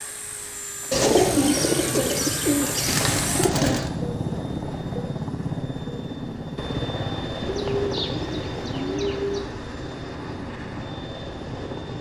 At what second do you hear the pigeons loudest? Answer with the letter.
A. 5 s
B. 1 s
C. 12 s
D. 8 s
B.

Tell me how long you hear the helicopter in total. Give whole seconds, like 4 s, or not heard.
12 s.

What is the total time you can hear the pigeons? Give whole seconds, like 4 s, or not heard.
5 s.